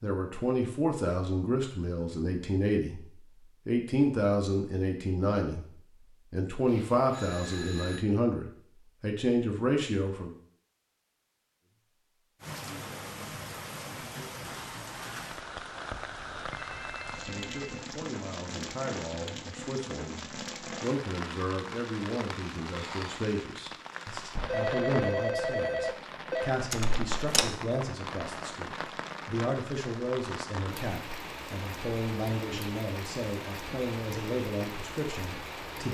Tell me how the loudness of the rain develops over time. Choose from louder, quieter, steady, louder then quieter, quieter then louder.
steady.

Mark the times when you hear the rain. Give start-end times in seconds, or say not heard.
12.4-35.9.